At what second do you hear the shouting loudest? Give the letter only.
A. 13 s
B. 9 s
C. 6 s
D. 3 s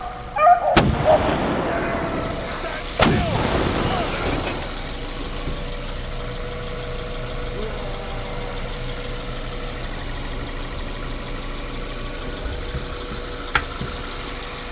D.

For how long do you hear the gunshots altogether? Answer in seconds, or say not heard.
4 s.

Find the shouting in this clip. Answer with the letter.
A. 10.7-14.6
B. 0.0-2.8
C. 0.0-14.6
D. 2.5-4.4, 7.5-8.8
D.